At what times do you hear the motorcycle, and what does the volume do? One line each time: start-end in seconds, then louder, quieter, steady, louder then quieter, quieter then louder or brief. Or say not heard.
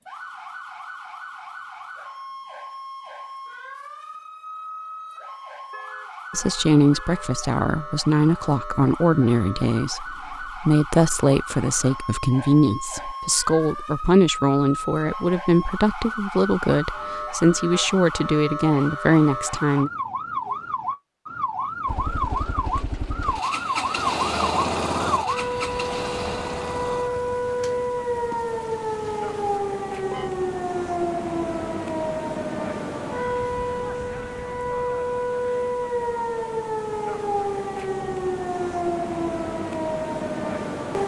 21.9-29.6 louder then quieter.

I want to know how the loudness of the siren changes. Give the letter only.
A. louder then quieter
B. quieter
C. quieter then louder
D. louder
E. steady
D.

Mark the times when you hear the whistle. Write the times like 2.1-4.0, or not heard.
not heard.